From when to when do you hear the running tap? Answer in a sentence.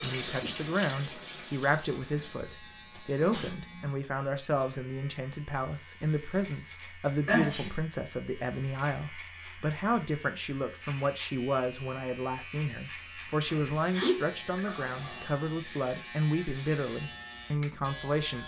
You can hear the running tap from 0.0 to 2.5 s.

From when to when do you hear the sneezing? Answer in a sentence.
The sneezing can be heard from 2.1 to 3.9 s, from 7.2 to 7.8 s and from 13.4 to 15.3 s.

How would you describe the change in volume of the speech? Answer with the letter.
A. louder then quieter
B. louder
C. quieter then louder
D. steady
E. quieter
D.